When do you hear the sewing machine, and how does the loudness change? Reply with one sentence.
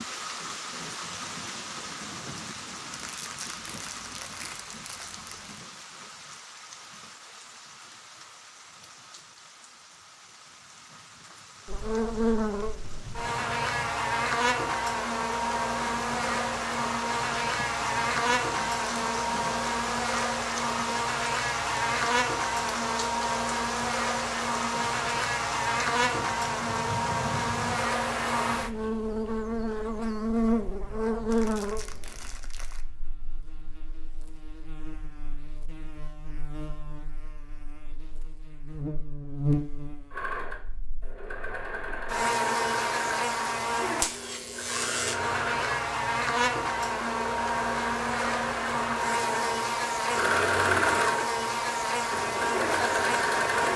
The sewing machine can be heard from 40.1 to 53.7 s, getting louder.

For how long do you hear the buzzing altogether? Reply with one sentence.
The buzzing can be heard for 42 seconds in total.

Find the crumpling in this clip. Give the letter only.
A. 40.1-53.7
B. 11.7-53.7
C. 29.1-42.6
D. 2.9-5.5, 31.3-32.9
D.